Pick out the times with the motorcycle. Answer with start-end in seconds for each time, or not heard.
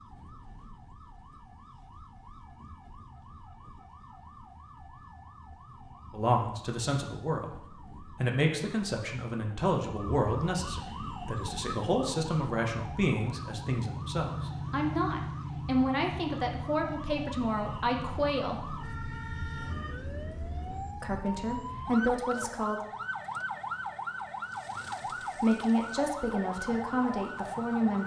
10.8-20.8.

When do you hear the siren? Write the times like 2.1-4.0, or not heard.
0.0-28.0.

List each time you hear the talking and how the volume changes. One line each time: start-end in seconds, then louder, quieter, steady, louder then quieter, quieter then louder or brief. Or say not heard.
6.1-18.7 steady
21.0-22.8 brief
25.4-28.0 brief.